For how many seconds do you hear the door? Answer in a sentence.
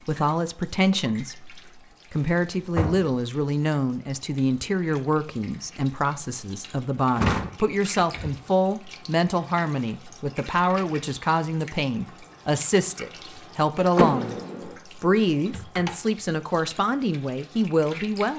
The door can be heard for 3 seconds in total.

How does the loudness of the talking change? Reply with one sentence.
The volume of the talking stays about the same.